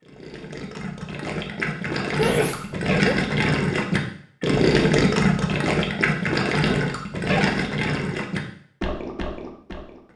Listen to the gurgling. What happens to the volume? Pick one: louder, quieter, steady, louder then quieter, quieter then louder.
louder then quieter.